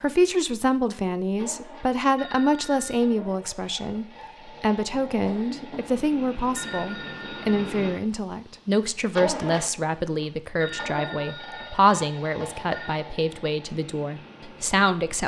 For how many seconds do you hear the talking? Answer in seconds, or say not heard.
15 s.